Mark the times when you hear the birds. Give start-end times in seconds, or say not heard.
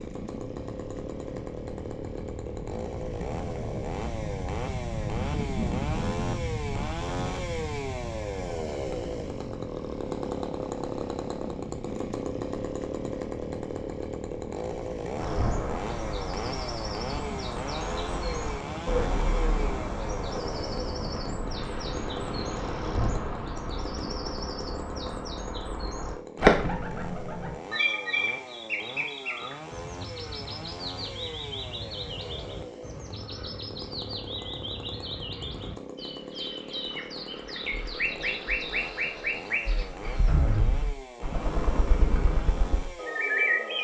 15.2-43.7.